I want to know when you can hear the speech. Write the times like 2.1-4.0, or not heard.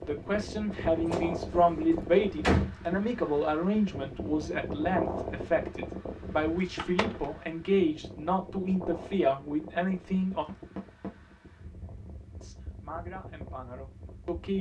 0.0-10.4, 12.4-14.5.